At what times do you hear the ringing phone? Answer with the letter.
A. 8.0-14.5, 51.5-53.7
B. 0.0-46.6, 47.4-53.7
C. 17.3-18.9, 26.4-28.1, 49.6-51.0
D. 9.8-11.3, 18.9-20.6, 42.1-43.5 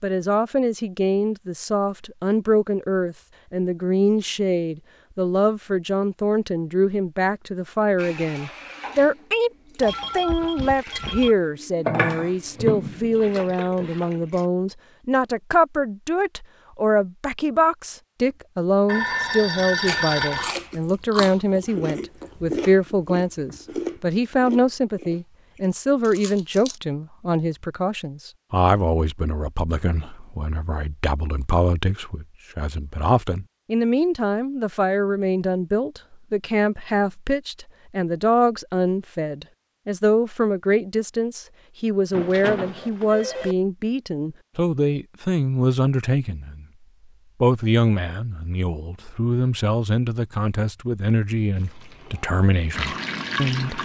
D.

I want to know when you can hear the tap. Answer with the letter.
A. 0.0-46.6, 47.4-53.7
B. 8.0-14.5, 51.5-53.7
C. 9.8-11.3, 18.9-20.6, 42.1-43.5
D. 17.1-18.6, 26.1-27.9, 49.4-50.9
B.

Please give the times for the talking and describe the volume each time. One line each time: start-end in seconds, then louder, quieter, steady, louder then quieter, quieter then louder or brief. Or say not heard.
0.0-46.6 steady
47.4-53.7 steady.